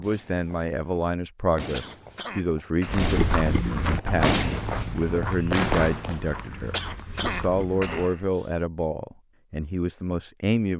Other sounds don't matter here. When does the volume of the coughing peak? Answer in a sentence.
The loudest moment of the coughing is at 7 seconds.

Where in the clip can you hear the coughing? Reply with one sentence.
The coughing can be heard from 1.7 to 3.1 s and from 6.7 to 8.2 s.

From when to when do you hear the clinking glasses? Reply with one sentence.
You can't hear the clinking glasses here.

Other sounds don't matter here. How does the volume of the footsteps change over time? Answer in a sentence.
The volume of the footsteps goes down.